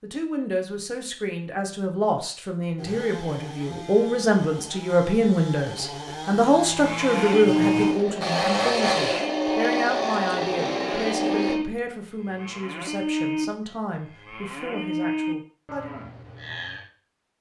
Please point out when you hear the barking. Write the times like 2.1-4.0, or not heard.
not heard.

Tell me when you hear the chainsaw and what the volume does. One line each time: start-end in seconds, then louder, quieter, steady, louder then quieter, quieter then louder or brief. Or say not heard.
2.8-11.6 louder.